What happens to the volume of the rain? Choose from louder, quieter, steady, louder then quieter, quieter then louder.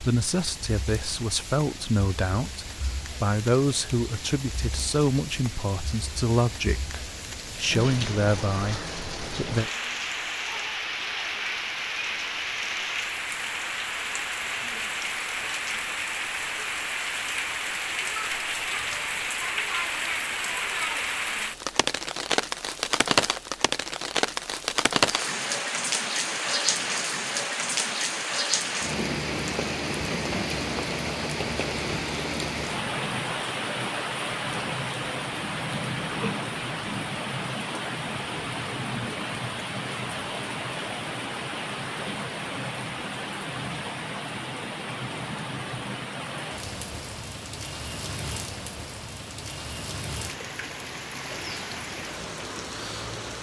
louder then quieter.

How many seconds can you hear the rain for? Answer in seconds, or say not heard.
53 s.